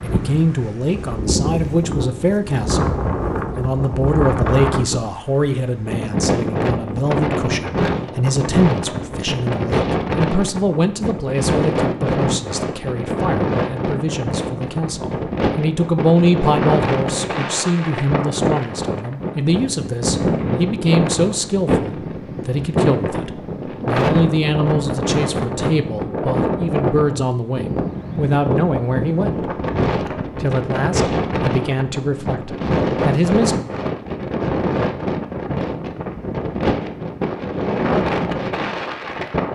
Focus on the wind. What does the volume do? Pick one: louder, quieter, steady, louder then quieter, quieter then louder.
steady.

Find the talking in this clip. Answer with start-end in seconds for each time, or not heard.
0.0-29.5, 30.4-33.5.